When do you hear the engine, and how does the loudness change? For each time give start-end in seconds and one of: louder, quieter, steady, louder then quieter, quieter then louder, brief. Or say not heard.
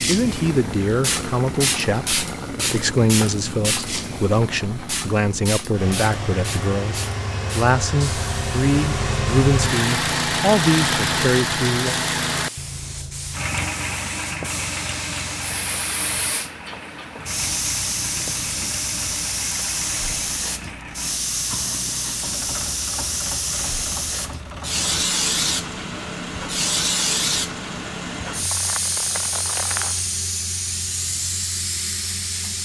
0.2-32.6 louder then quieter.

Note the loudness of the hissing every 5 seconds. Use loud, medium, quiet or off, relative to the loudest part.
loud, medium, medium, loud, loud, loud, loud.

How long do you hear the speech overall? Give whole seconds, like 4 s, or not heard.
12 s.